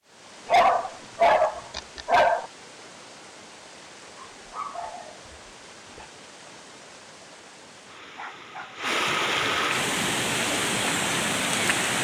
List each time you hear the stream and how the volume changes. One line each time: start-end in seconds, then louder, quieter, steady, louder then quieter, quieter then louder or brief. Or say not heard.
0.0-11.9 louder.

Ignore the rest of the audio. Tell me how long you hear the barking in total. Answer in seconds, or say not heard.
4 s.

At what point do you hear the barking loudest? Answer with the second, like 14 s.
1 s.